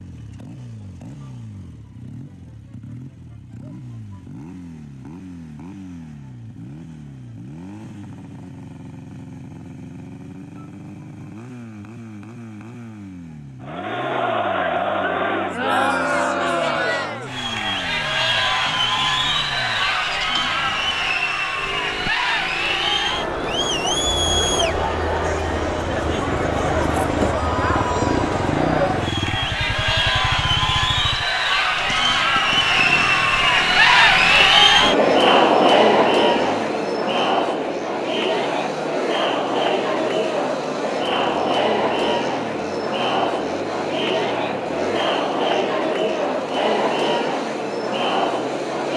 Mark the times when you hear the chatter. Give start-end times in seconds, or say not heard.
13.6-48.9.